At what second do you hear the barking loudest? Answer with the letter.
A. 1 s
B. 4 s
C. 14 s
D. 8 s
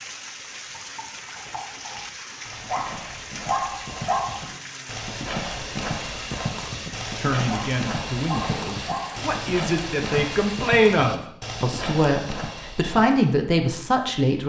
B.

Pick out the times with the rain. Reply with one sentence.
You can hear the rain from 0.0 to 10.7 s.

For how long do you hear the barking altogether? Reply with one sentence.
The barking can be heard for 4 seconds in total.